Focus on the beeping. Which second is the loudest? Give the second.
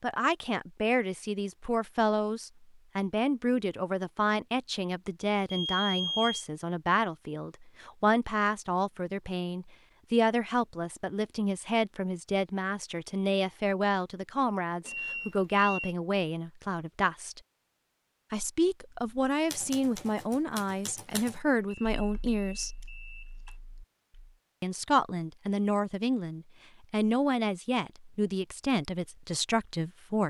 6 s.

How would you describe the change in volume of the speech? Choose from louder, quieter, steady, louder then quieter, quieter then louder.
steady.